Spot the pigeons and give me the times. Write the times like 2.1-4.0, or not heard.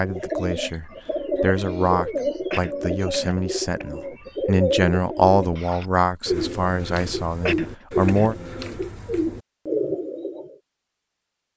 0.0-10.6.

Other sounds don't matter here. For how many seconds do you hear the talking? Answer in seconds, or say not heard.
8 s.